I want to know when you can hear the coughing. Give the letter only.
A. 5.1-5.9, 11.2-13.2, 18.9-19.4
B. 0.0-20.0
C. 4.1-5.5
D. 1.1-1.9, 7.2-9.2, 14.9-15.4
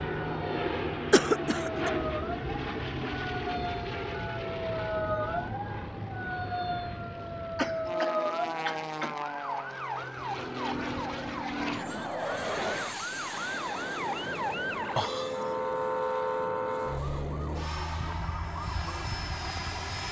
D.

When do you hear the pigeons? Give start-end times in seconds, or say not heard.
not heard.